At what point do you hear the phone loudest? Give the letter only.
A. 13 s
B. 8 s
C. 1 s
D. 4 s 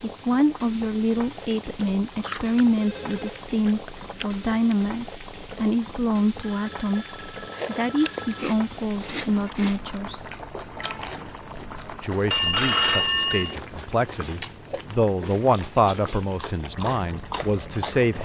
A.